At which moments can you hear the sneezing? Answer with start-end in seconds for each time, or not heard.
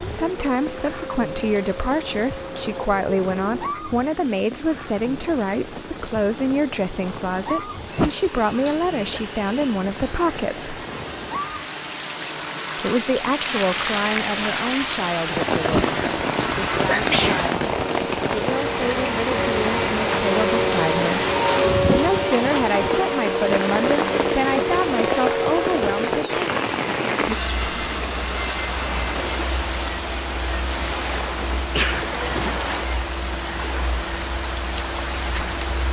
7.9-9.2, 15.7-17.4, 31.7-32.2.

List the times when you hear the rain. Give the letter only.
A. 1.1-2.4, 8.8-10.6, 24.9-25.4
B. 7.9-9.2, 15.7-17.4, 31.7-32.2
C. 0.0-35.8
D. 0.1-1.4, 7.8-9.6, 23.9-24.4
C.